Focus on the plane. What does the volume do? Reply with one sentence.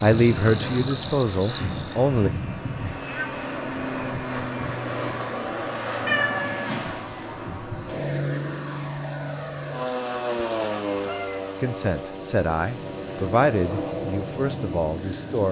The loudness of the plane stays about the same.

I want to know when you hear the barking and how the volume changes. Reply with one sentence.
You can't hear the barking here.